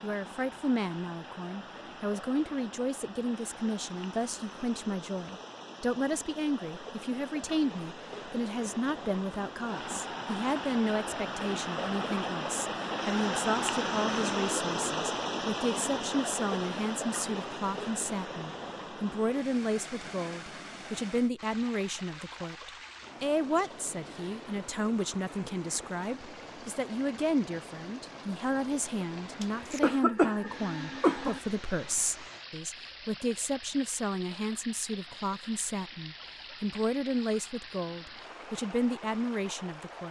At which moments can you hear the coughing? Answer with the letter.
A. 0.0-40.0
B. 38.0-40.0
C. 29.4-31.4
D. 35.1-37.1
C.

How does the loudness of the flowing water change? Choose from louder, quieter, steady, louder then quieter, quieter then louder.
louder then quieter.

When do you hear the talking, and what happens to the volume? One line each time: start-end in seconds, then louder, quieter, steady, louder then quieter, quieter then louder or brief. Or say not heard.
0.0-40.0 steady.